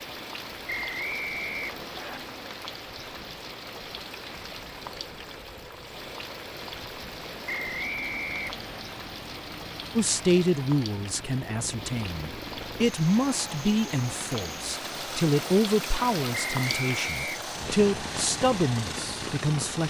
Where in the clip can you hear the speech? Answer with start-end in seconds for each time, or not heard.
9.9-19.8.